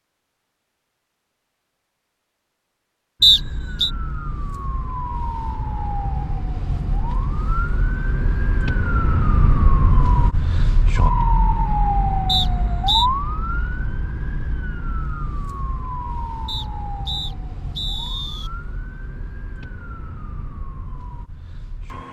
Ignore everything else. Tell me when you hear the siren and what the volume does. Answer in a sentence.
You can hear the siren from 3.2 to 22.0 s, getting louder then quieter.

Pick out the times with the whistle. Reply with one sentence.
You can hear the whistle from 3.2 to 3.9 s, from 12.2 to 13.1 s and from 16.4 to 18.5 s.